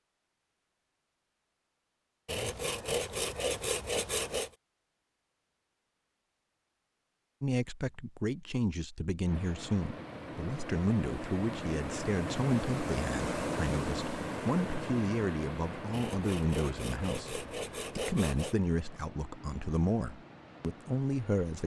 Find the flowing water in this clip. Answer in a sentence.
The flowing water can be heard from 9.2 to 21.6 s.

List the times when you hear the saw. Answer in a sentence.
You can hear the saw from 2.2 to 4.5 s and from 15.9 to 18.6 s.